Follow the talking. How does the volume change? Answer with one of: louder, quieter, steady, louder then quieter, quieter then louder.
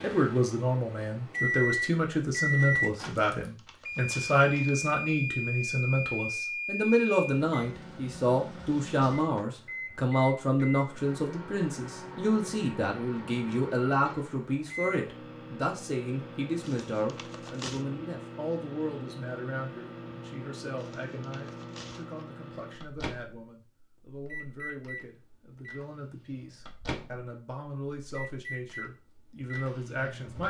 quieter.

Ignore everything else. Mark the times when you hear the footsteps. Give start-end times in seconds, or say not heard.
not heard.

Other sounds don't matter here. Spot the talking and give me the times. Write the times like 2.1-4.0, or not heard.
0.0-30.4.